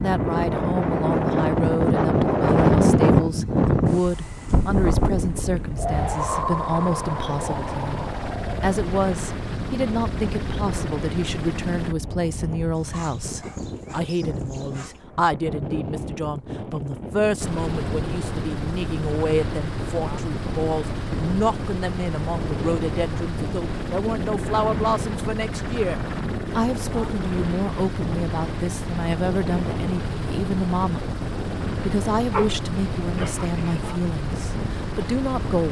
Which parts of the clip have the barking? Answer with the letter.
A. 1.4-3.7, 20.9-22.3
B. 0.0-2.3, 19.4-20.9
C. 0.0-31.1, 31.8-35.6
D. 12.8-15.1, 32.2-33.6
D.